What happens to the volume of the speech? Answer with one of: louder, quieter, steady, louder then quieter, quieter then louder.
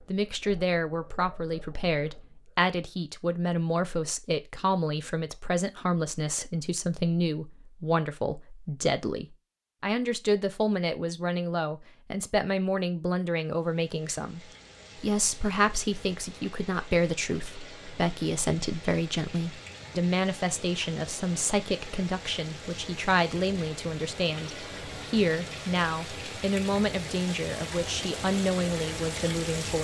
steady.